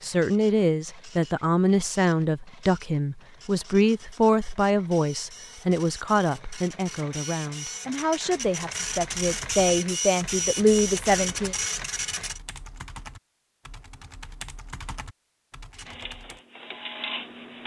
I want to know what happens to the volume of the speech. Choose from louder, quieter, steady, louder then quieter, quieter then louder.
quieter then louder.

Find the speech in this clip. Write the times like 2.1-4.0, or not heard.
0.0-11.6.